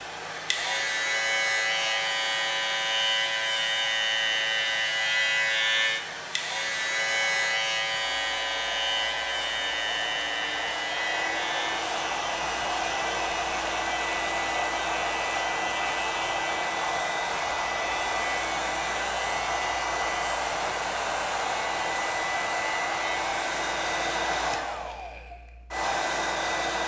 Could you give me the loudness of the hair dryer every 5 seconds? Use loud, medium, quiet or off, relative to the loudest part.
medium, medium, loud, loud, loud, loud.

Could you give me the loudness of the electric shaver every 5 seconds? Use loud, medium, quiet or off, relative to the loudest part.
loud, loud, medium, medium, medium, off.